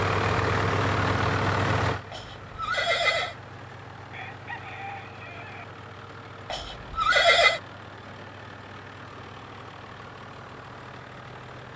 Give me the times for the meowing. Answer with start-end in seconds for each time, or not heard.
not heard.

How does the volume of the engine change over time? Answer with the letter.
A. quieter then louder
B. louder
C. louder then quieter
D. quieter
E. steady
D.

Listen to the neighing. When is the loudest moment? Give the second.
7 s.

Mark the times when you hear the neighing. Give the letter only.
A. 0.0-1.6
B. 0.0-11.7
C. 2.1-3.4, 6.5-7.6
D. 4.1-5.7
C.